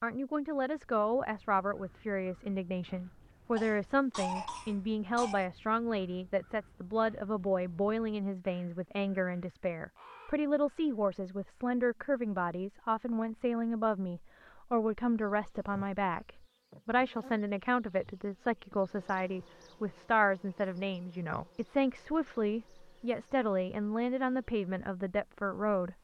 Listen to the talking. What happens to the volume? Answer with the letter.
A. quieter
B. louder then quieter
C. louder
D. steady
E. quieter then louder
D.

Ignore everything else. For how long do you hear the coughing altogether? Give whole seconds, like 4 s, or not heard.
2 s.